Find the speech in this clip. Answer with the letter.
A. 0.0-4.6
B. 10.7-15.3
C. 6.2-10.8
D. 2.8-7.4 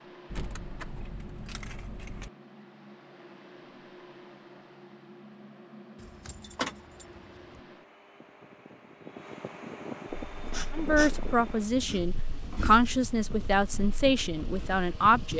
B.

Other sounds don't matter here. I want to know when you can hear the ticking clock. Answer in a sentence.
The ticking clock can't be heard in this clip.